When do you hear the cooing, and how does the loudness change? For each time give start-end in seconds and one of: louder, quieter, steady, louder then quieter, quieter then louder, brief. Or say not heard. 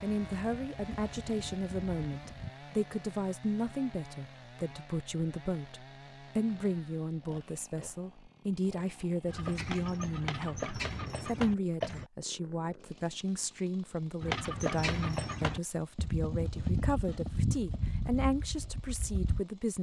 not heard.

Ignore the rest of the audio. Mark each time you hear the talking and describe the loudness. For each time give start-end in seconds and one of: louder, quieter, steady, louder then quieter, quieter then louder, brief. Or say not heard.
0.0-19.7 steady.